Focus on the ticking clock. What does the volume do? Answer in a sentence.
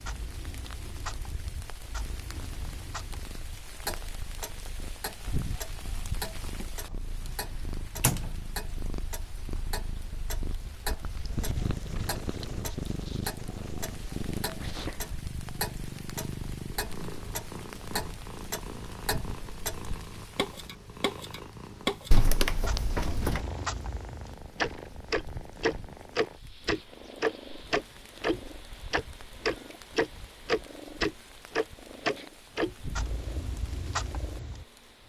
The volume of the ticking clock goes up.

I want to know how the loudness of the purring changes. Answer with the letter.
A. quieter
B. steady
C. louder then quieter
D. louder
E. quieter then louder
C.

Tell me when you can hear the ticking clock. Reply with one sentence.
You can hear the ticking clock from 0.0 to 35.0 s.